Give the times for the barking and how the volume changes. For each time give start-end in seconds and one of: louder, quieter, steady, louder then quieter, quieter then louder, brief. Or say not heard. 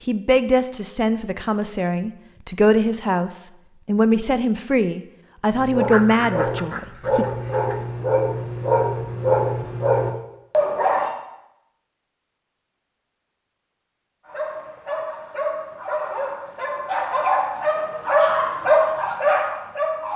5.5-11.2 louder
14.2-20.1 louder.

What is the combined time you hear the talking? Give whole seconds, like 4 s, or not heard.
7 s.